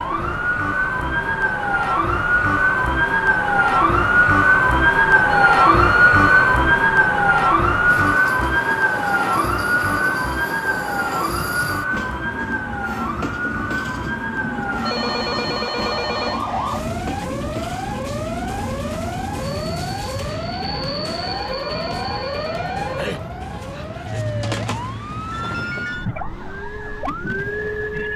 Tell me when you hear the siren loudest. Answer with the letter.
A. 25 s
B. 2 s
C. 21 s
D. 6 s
D.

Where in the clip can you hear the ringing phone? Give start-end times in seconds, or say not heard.
5.4-6.5, 14.8-16.4, 21.2-23.2.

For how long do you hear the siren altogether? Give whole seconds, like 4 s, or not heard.
28 s.